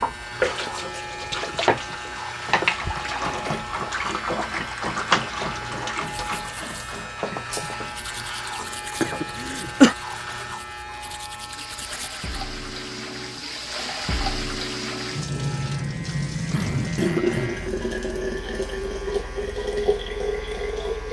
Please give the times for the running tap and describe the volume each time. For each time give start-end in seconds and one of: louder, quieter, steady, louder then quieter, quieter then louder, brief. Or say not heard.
0.0-21.0 quieter then louder.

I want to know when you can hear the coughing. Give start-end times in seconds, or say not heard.
3.2-3.7, 9.0-9.9, 16.5-17.6.